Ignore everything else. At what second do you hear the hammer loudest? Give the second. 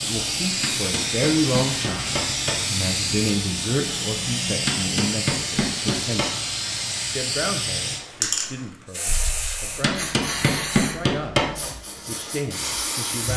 11 s.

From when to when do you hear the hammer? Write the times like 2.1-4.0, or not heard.
0.6-2.6, 4.7-6.3, 9.8-11.6.